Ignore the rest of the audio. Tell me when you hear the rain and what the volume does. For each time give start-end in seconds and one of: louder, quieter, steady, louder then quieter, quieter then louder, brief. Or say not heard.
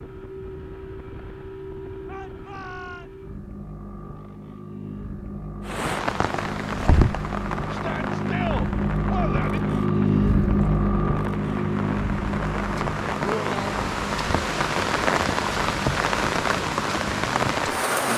5.6-18.1 quieter then louder.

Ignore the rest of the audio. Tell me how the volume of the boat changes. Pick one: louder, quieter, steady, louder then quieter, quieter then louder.
louder then quieter.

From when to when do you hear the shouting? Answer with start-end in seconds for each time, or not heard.
2.0-3.1, 7.7-9.6, 13.2-13.7.